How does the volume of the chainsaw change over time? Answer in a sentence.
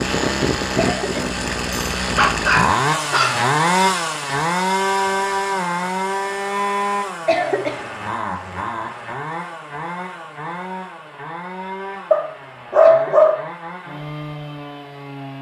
The loudness of the chainsaw goes down.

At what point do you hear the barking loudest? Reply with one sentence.
The loudest moment of the barking is at 13 seconds.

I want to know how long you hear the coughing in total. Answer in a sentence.
The coughing can be heard for 2 seconds in total.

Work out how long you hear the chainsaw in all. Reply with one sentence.
You can hear the chainsaw for 15 seconds altogether.